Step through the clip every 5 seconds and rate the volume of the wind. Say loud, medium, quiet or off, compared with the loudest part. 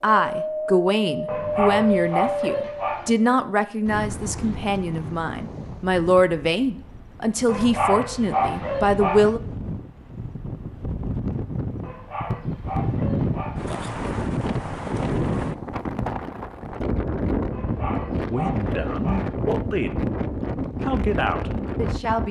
loud, medium, loud, loud, loud.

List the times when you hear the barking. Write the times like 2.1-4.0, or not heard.
1.2-3.1, 7.5-9.3, 11.8-13.7, 17.5-19.4.